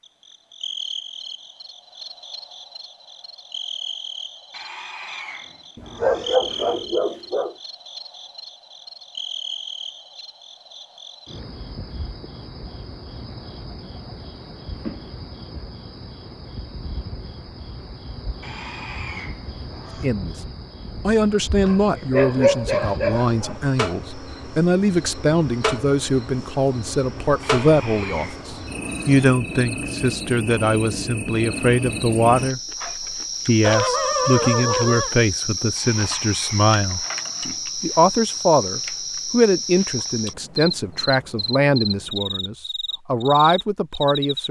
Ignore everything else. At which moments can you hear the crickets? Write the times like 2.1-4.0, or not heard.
0.0-44.4.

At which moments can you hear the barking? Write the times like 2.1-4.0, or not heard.
5.8-7.5, 21.6-23.6, 33.6-35.1.